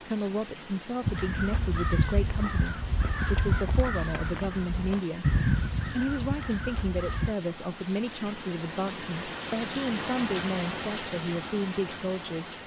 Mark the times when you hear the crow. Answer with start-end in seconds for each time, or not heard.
1.0-7.3.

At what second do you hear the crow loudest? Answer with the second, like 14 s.
5 s.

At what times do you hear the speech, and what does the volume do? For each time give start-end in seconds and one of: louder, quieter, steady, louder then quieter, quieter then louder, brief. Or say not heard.
0.1-12.6 steady.